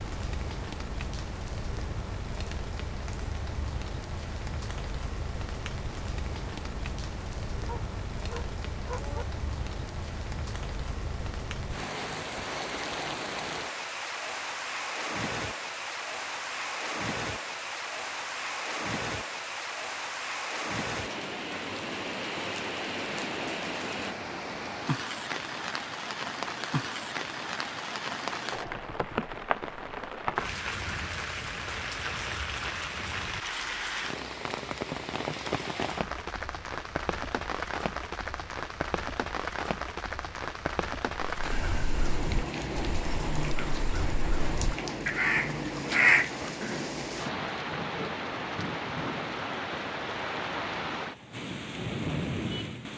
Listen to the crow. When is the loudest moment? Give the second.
46 s.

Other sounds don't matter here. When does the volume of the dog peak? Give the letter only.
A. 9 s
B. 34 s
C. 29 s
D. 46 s
A.